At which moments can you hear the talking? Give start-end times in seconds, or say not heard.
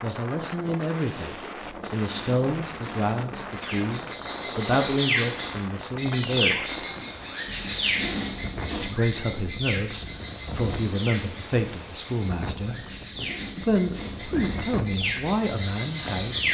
0.0-6.8, 8.8-12.8, 13.6-16.5.